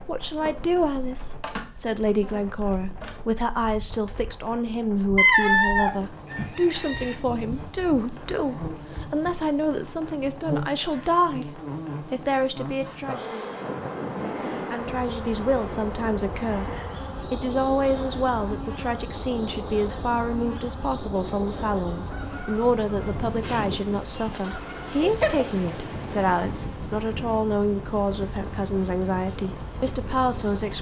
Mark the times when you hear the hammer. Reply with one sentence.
The hammer can't be heard in this clip.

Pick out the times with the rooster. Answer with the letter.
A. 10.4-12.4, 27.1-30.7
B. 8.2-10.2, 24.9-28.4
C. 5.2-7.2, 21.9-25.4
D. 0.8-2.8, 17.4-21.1
C.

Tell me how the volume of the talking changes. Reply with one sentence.
The volume of the talking stays about the same.